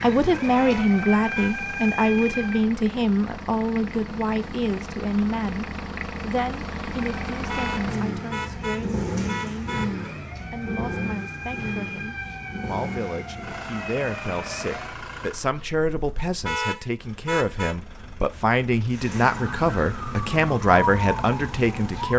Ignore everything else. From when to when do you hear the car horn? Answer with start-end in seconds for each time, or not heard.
0.5-1.6, 7.5-10.1, 16.4-17.8.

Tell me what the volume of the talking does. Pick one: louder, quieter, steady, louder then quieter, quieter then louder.
quieter then louder.